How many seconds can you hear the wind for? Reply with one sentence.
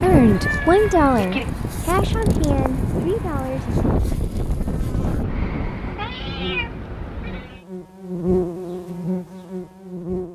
The wind can be heard for 6 seconds in total.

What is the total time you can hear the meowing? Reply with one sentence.
You can hear the meowing for 4 seconds altogether.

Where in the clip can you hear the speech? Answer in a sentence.
You can hear the speech from 0.0 to 3.8 s.